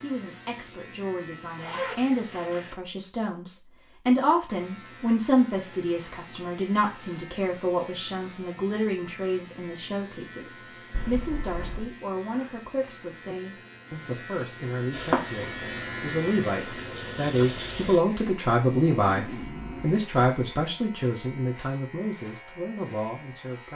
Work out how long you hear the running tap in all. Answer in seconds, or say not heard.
3 s.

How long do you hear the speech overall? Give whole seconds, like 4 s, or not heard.
24 s.